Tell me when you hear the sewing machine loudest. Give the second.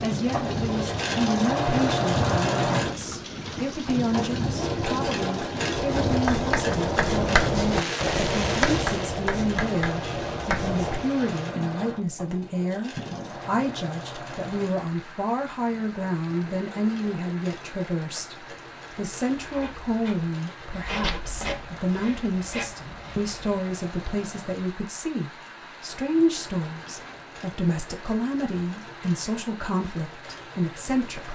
2 s.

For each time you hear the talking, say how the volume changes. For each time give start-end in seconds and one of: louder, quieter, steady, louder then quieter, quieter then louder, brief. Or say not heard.
0.0-31.2 steady.